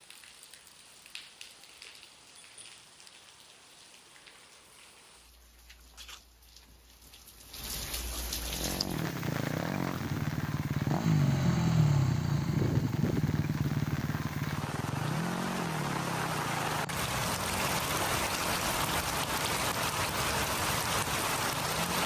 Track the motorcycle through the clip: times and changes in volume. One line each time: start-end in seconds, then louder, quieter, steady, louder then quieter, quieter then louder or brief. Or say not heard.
8.4-22.0 quieter.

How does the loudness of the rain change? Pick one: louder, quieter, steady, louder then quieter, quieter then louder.
louder.